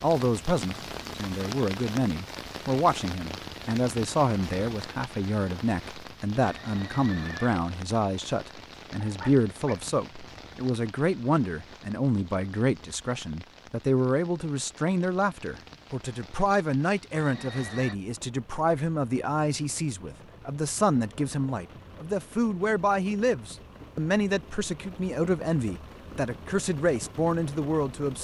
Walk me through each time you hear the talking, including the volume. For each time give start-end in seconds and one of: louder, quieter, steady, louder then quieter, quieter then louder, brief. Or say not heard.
0.0-28.1 steady.